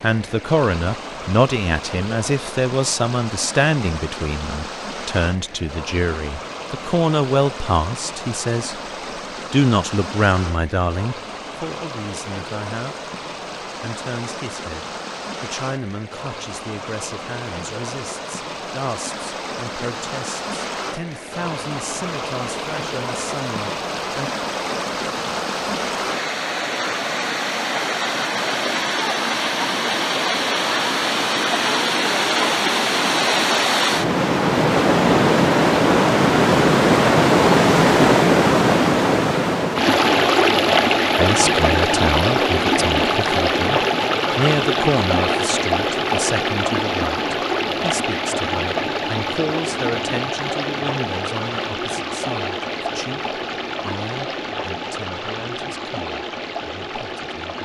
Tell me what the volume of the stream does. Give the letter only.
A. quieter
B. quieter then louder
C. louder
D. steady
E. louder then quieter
E.